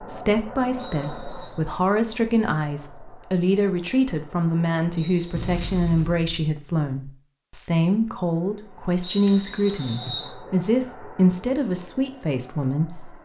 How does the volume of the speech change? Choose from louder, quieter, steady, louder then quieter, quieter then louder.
steady.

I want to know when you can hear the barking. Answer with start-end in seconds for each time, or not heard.
not heard.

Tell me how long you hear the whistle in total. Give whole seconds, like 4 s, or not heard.
3 s.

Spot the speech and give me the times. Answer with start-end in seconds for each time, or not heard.
0.0-13.2.